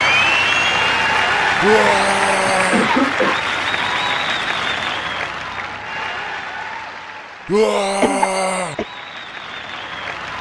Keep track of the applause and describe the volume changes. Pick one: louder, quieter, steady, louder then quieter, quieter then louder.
quieter.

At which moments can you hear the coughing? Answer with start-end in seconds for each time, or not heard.
1.6-3.4, 8.0-8.8.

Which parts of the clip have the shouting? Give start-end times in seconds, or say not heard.
1.6-2.9, 7.5-8.8.